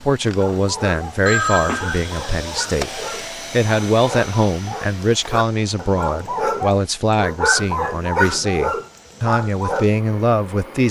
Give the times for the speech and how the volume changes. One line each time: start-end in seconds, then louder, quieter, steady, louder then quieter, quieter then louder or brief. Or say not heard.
0.0-10.8 steady.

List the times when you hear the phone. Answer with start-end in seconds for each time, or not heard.
1.2-2.3.